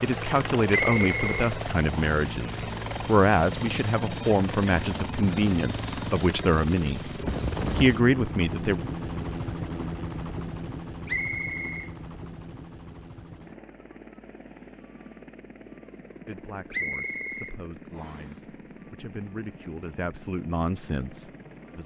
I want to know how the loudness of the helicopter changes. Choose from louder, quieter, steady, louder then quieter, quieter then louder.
quieter.